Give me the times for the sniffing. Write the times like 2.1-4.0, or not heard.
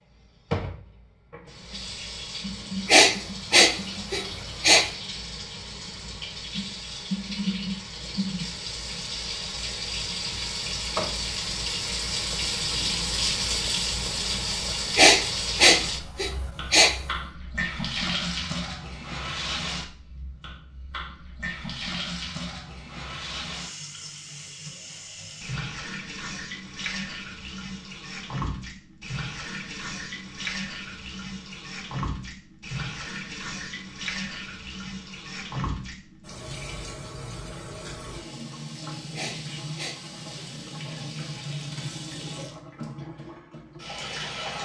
2.9-4.8, 14.9-16.9, 39.1-40.5.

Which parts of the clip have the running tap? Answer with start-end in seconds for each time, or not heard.
0.1-44.6.